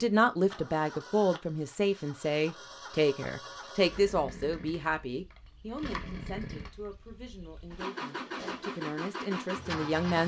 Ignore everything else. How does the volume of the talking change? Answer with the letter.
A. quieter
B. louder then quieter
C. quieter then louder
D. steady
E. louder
C.